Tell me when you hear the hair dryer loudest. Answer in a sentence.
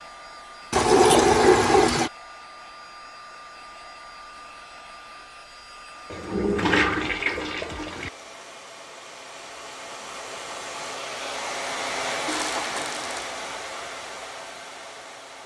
The volume of the hair dryer peaks at 12 seconds.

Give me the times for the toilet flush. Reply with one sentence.
The toilet flush can be heard from 0.7 to 2.1 s, from 6.1 to 8.1 s and from 12.2 to 13.3 s.